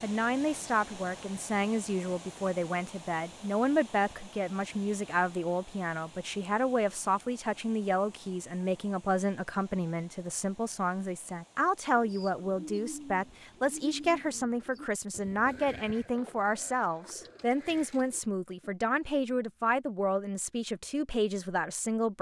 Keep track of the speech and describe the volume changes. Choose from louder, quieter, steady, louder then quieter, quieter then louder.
steady.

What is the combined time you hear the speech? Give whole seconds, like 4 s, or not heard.
22 s.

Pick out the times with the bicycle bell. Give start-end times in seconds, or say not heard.
not heard.